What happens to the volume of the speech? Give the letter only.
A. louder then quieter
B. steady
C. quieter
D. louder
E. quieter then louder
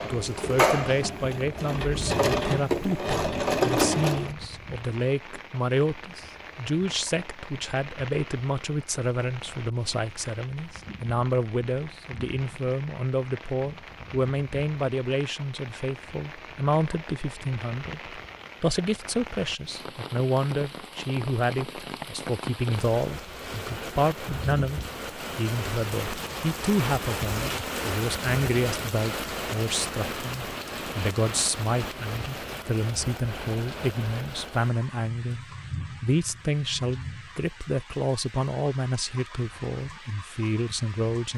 B.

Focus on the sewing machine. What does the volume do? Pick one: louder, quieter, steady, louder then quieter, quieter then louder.
quieter then louder.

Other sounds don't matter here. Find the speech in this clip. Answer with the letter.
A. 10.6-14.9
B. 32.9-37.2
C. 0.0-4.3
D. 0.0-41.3
D.